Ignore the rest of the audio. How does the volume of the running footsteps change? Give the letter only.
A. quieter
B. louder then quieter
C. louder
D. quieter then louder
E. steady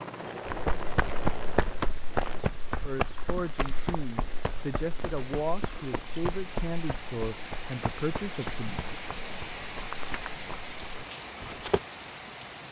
A.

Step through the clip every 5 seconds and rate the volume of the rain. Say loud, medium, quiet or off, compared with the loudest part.
medium, loud, loud.